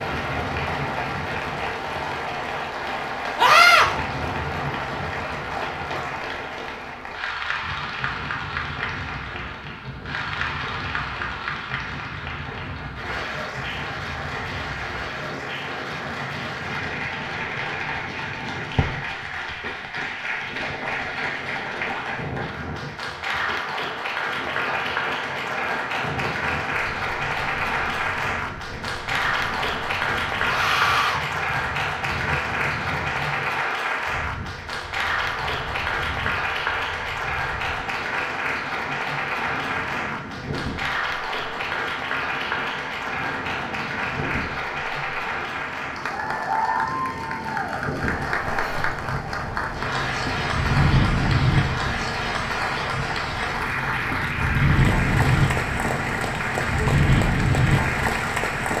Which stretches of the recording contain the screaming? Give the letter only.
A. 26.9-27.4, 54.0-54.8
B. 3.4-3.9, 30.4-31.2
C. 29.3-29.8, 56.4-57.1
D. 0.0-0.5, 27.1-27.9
B.